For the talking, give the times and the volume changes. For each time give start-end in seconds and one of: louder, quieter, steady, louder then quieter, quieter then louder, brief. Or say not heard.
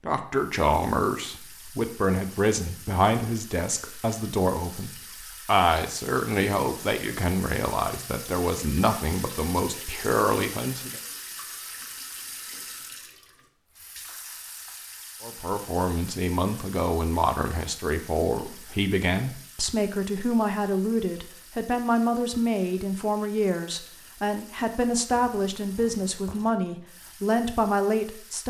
0.1-11.0 steady
15.2-28.4 steady.